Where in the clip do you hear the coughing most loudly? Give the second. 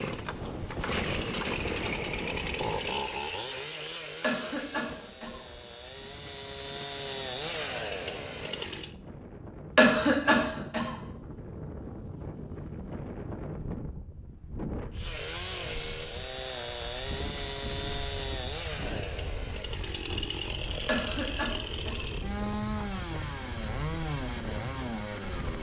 10 s.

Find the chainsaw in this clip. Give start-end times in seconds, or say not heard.
0.0-8.9, 14.9-25.5.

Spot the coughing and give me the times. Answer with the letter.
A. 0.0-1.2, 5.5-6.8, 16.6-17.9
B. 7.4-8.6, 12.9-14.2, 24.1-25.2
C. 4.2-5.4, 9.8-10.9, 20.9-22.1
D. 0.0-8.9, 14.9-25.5
C.